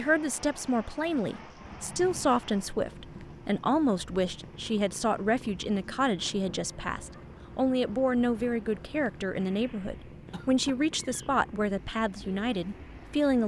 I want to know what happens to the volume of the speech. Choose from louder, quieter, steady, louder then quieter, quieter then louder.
steady.